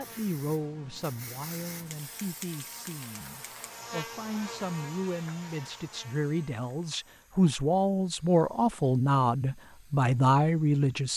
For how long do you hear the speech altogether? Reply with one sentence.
You can hear the speech for 11 seconds altogether.